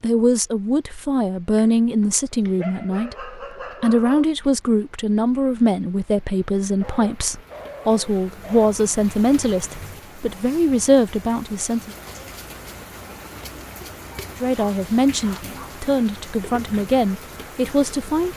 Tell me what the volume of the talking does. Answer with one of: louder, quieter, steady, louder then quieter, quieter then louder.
steady.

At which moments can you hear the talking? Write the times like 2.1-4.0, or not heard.
0.0-11.9, 14.4-18.3.